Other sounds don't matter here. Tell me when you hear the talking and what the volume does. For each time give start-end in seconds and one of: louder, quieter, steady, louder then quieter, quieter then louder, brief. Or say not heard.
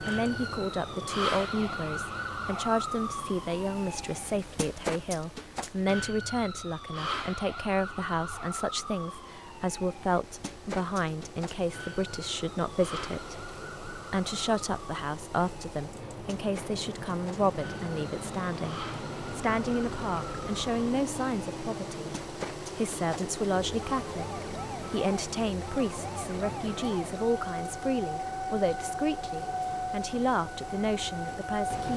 0.0-31.9 steady.